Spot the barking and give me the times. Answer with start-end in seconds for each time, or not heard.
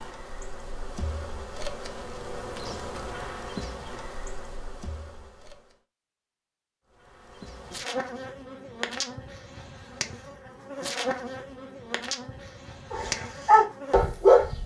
12.9-14.4.